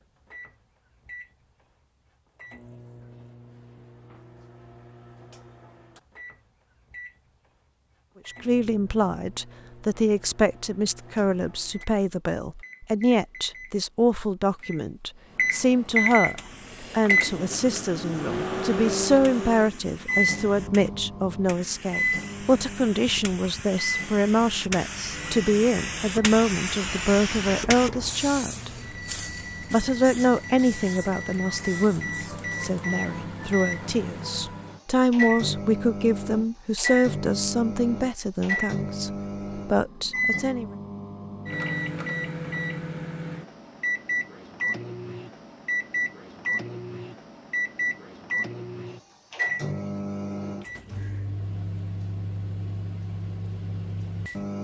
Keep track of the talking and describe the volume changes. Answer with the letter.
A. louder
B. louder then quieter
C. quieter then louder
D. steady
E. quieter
D.